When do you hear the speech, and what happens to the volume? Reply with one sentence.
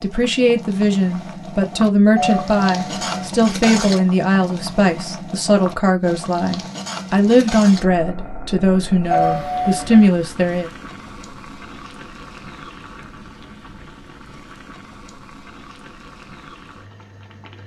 You can hear the speech from 0.0 to 10.7 s, at a steady volume.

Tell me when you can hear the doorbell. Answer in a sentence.
The doorbell can be heard from 2.1 to 3.3 s and from 9.1 to 10.1 s.